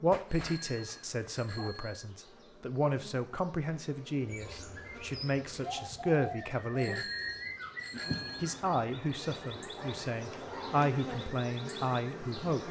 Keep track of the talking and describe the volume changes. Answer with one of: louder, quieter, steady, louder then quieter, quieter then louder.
steady.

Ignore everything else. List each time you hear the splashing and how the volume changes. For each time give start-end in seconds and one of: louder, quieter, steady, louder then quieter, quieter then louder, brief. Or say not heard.
not heard.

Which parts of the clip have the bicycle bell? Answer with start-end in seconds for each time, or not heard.
0.3-2.0, 6.8-8.6.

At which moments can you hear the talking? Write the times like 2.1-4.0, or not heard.
0.0-7.0, 8.4-12.6.